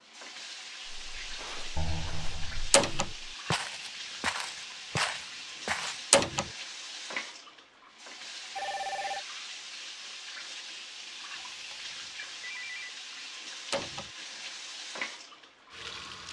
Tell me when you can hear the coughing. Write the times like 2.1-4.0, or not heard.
not heard.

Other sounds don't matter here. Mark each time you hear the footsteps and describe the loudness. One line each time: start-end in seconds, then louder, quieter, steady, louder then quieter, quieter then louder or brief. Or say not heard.
0.8-6.0 louder.